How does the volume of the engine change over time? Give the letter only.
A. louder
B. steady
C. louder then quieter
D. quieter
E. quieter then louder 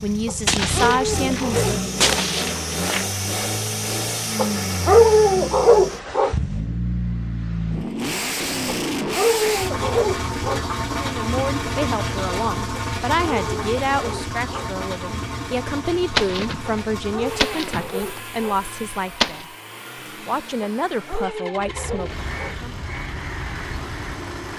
D.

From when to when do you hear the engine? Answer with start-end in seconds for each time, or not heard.
0.0-24.5.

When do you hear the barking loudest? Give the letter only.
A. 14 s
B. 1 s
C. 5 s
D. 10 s
C.